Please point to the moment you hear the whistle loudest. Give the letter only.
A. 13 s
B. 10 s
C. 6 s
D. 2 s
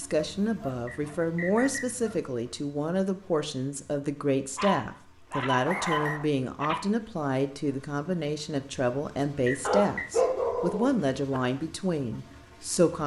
C.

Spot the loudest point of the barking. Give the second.
10 s.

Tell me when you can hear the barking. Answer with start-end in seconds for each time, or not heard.
0.4-2.2, 4.5-6.8, 9.7-11.4.